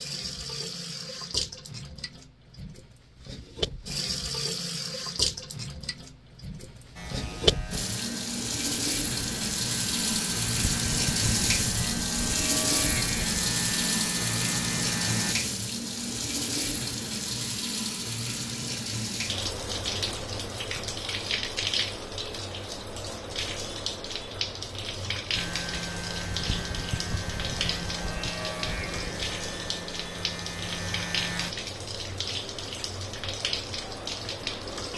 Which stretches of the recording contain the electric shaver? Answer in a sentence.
You can hear the electric shaver from 7.0 to 15.3 s and from 25.4 to 31.6 s.